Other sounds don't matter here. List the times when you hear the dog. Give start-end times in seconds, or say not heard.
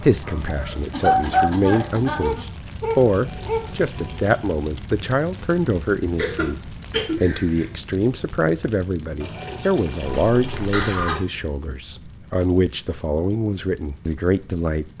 0.0-3.7.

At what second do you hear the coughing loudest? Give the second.
1 s.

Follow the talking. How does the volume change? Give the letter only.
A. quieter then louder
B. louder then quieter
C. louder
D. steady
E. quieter
D.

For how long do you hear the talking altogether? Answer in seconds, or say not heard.
15 s.